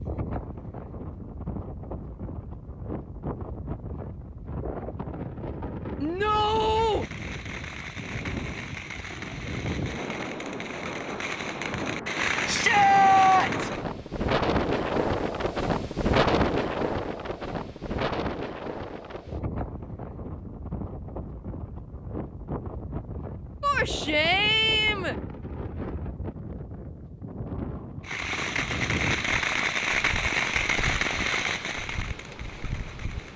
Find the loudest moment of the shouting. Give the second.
13 s.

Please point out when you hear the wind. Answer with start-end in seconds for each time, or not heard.
0.0-33.3.